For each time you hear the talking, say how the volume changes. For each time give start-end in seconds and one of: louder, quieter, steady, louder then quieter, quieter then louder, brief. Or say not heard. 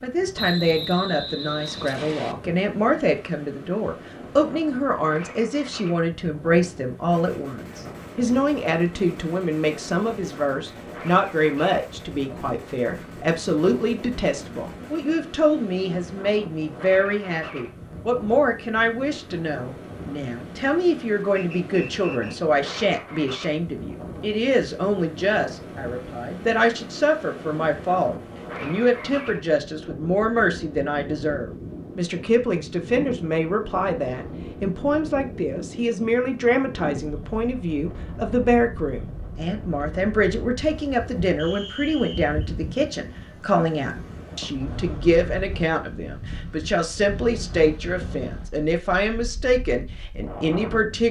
0.0-51.0 steady.